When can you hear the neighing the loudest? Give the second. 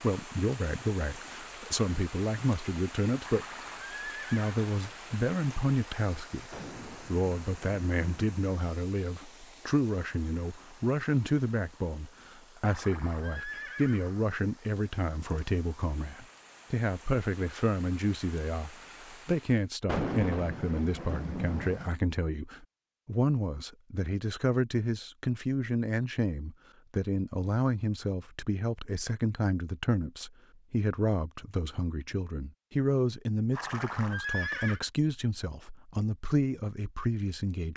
34 s.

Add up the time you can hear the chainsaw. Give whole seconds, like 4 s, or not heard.
not heard.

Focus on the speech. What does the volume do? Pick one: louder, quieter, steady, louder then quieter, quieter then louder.
steady.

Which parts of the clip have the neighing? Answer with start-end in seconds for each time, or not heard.
3.2-4.6, 12.7-14.2, 33.5-34.8.